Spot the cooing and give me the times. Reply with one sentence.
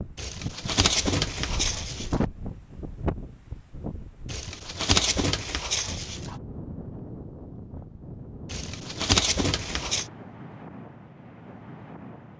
The cooing can be heard from 0.1 to 2.2 s, from 4.2 to 6.3 s and from 8.5 to 10.1 s.